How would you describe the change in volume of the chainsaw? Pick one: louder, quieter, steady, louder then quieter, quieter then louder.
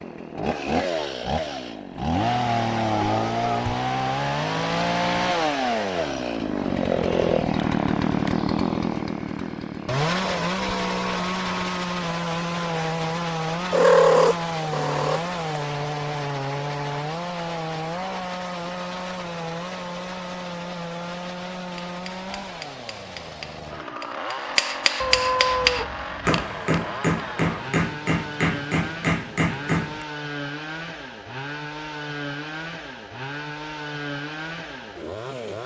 quieter.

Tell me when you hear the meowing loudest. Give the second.
14 s.